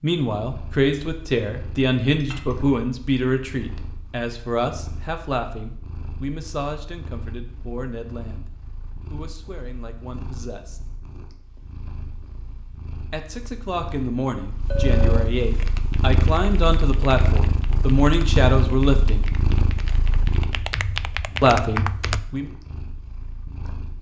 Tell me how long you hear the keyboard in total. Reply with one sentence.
You can hear the keyboard for 7 seconds altogether.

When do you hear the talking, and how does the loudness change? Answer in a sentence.
You can hear the talking from 0.0 to 10.8 s, getting quieter; from 13.1 to 19.3 s, getting louder; and briefly from 21.4 to 22.5 s.